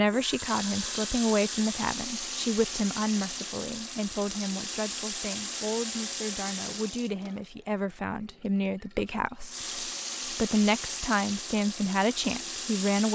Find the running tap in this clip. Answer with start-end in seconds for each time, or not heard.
0.0-13.1.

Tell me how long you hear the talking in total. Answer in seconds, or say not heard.
13 s.